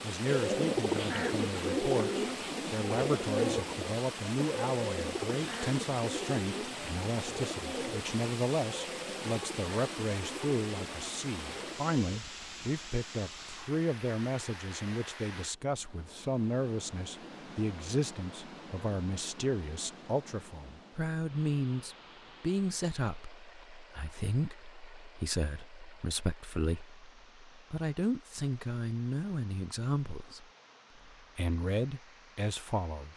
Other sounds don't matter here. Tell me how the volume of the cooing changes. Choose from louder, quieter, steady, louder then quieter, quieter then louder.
quieter.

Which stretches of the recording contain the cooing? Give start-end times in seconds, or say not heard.
0.2-12.2.